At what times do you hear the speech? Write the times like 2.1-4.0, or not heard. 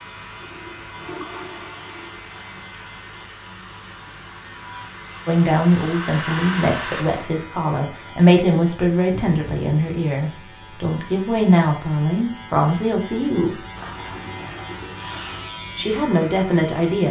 5.2-13.6, 15.8-17.0.